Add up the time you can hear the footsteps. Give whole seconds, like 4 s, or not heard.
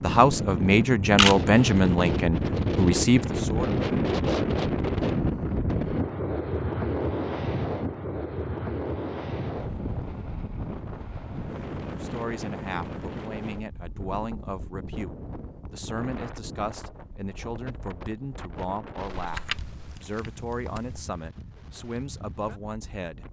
not heard.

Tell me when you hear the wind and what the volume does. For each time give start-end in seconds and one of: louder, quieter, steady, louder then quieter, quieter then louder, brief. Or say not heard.
0.0-23.2 quieter.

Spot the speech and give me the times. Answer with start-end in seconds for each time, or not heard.
0.0-3.9, 12.0-23.2.